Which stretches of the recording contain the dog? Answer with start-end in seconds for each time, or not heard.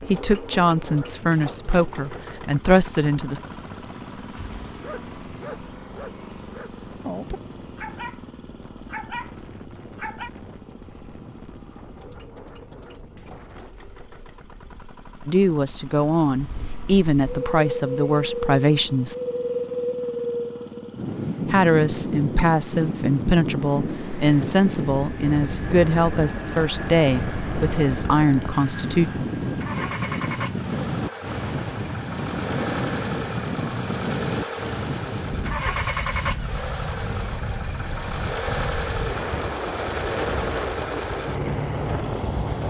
4.3-10.3.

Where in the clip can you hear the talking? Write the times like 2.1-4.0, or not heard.
0.0-3.4, 15.2-19.1, 21.4-29.1.